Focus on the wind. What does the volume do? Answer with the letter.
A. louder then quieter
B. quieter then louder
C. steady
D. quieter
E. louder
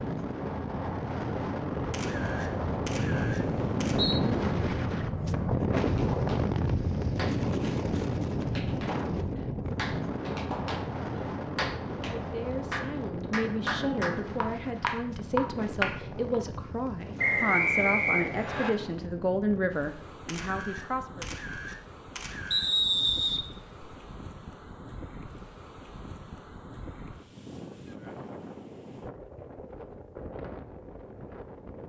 D.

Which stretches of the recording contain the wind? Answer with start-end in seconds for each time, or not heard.
0.0-31.8.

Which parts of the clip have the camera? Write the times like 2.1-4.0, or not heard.
1.9-4.0, 20.2-22.7.